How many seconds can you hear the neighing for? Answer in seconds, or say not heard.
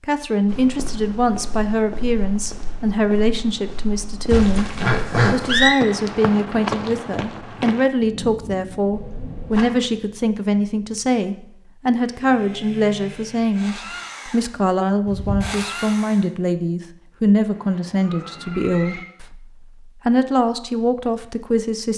4 s.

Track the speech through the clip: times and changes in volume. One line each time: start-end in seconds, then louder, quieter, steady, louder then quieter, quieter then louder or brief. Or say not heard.
0.0-21.9 steady.